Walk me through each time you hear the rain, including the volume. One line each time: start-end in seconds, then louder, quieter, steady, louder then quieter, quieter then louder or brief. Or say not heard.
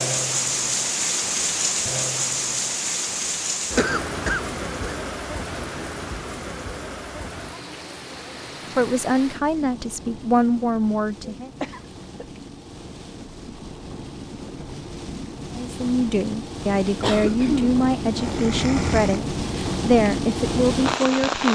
0.0-21.4 quieter then louder.